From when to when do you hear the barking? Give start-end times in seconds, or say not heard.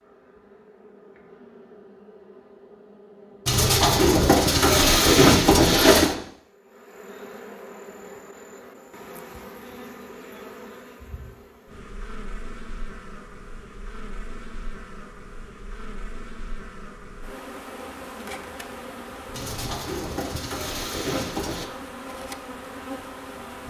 not heard.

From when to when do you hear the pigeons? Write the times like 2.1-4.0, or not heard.
3.5-6.2, 19.3-21.6.